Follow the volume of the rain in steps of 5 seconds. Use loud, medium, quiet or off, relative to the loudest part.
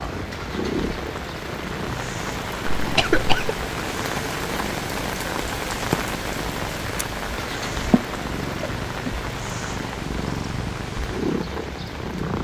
loud, loud, medium.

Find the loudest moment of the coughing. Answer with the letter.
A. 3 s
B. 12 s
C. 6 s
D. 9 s
A.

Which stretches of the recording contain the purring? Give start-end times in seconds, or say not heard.
0.0-12.3.